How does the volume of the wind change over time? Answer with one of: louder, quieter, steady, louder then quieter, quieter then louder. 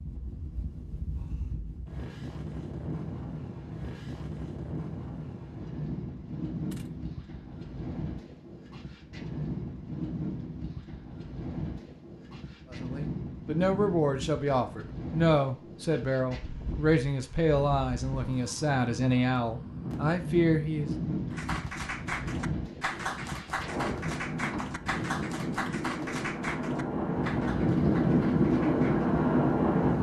louder.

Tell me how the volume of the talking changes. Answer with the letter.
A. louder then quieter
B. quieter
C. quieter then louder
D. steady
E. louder
D.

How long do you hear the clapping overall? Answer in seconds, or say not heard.
8 s.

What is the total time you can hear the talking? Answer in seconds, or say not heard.
8 s.